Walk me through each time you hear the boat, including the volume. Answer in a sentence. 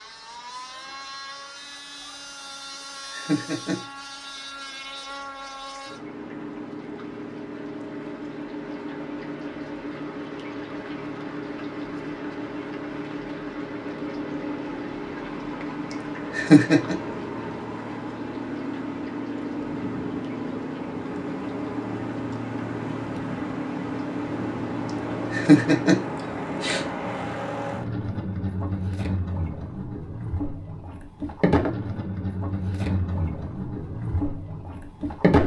The boat can be heard from 0.0 to 35.4 s, getting louder.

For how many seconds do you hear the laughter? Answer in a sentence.
The laughter can be heard for 3 seconds in total.